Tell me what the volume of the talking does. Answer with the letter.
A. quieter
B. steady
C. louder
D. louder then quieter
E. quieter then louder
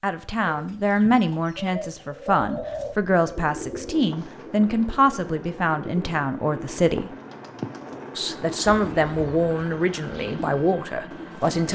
B.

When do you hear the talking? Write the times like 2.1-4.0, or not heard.
0.0-7.1, 8.2-11.7.